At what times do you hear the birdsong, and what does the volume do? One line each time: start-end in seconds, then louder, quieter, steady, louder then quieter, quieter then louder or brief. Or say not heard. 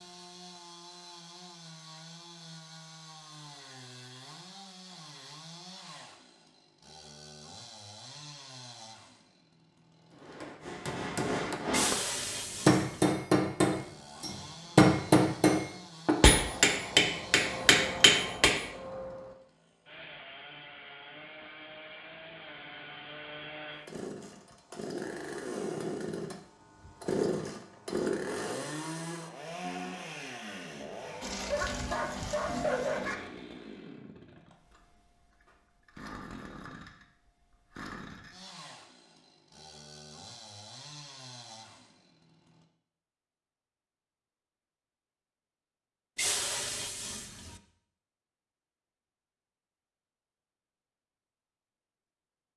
not heard.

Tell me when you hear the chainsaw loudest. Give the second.
28 s.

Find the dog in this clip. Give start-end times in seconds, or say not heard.
31.2-33.1.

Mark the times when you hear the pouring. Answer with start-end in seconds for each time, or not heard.
11.7-13.2, 46.1-47.6.